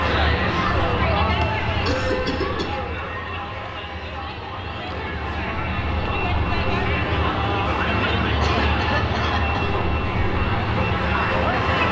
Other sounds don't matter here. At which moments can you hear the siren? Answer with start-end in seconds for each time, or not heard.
not heard.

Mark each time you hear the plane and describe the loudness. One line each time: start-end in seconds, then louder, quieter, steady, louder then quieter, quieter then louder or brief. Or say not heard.
0.0-11.8 quieter then louder.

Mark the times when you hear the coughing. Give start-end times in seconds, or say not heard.
1.3-2.8, 8.4-9.8.